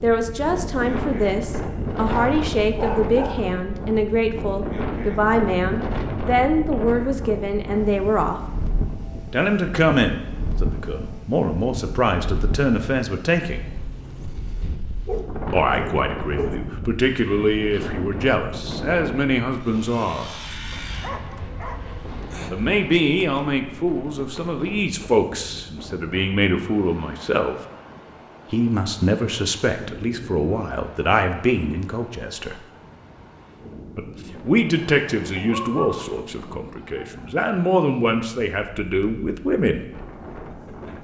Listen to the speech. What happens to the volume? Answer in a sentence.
The volume of the speech stays about the same.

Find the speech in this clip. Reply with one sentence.
You can hear the speech from 0.0 to 8.4 s, from 9.3 to 13.7 s, from 15.5 to 20.3 s, from 22.5 to 27.6 s, from 28.5 to 32.6 s and from 34.0 to 39.9 s.